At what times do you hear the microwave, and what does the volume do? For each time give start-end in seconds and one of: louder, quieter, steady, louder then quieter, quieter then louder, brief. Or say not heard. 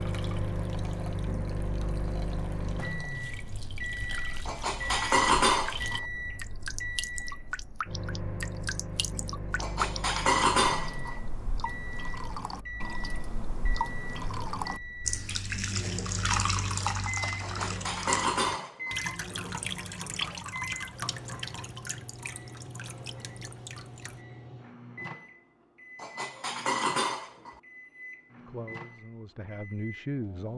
0.0-30.5 quieter.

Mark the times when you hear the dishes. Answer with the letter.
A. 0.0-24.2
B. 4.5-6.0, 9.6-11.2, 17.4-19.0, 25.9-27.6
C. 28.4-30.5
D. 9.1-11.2
B.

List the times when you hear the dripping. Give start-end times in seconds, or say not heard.
0.0-24.2.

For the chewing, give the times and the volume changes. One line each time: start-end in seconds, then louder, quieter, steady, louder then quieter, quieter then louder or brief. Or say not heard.
not heard.